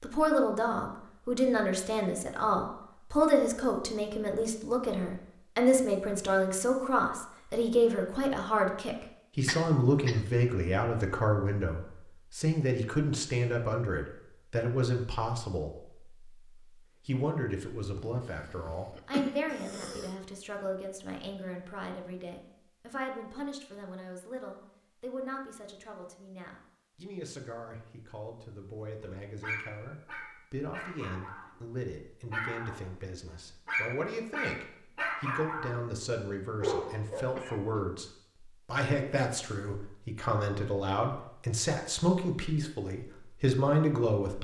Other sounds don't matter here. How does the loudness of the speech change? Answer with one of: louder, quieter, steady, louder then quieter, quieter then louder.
quieter then louder.